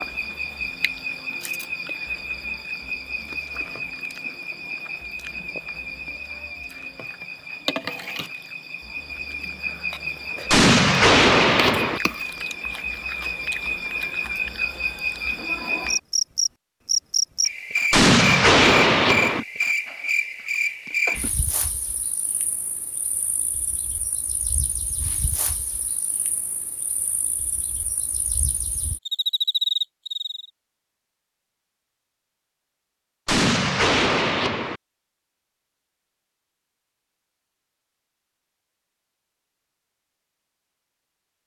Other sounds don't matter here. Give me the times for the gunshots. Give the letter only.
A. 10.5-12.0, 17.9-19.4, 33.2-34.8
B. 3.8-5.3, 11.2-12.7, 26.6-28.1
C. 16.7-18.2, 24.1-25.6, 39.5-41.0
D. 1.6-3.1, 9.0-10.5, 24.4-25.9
A.